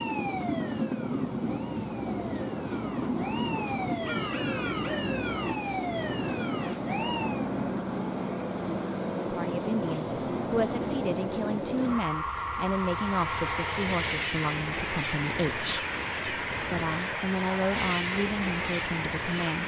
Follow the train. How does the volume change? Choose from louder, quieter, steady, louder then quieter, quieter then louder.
steady.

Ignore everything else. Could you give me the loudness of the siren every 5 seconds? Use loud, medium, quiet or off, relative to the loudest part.
loud, loud, off, off.